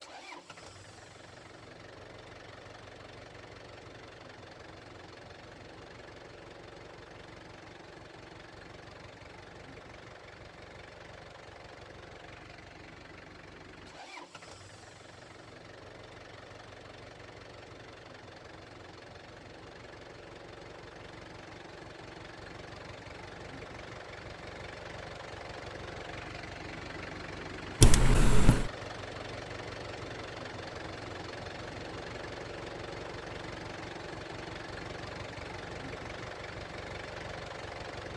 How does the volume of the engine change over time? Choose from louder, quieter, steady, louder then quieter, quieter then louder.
louder.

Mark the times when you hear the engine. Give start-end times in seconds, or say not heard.
0.0-38.1.